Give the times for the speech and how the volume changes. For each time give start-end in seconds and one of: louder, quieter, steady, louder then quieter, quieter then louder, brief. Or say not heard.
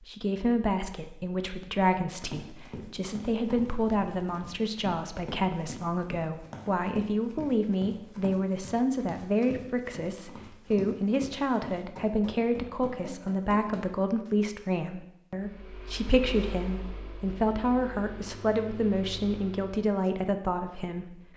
0.0-21.3 steady.